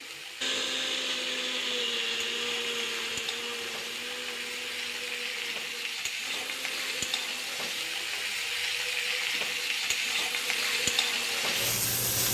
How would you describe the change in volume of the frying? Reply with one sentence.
The loudness of the frying goes up.